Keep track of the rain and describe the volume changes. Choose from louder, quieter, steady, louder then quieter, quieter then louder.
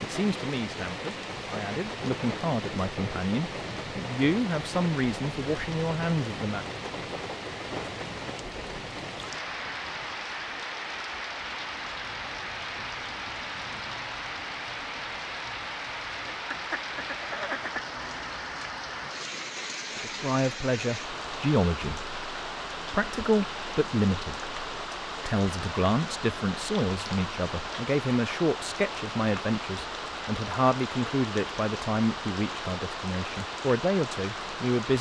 steady.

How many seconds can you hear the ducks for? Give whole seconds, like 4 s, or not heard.
2 s.